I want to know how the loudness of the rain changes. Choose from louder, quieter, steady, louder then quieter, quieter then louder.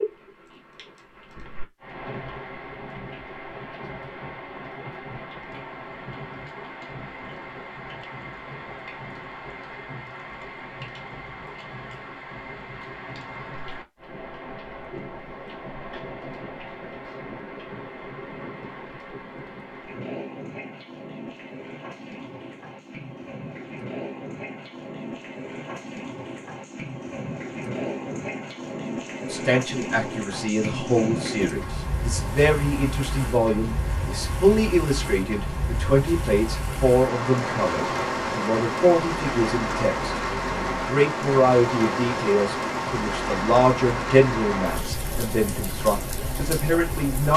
louder.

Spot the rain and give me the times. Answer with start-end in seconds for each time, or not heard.
0.0-47.3.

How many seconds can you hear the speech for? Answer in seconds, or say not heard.
18 s.